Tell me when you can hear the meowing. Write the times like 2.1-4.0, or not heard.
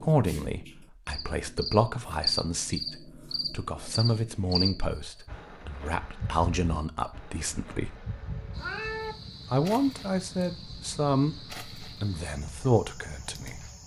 7.9-9.2.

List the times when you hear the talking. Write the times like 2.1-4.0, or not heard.
0.0-8.0, 9.5-13.7.